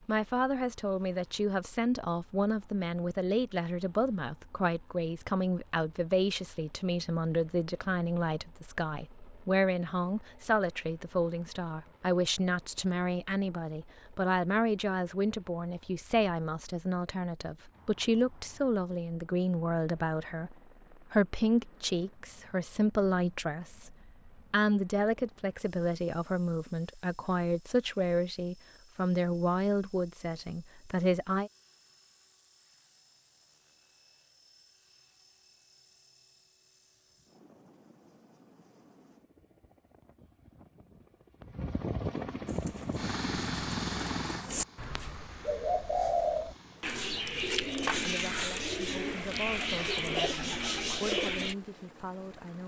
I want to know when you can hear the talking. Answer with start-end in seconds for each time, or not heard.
0.1-31.5, 48.0-52.6.